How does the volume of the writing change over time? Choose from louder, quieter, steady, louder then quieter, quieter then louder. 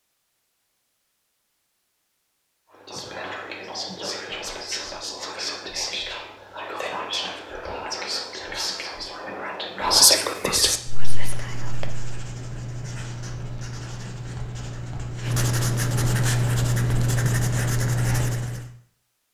louder.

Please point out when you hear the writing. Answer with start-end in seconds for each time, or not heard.
10.6-18.7.